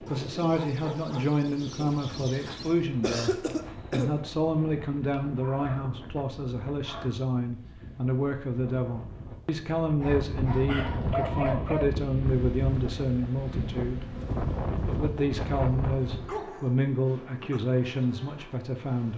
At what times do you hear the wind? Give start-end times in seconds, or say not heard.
0.0-16.4.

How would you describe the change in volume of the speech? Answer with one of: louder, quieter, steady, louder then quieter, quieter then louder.
steady.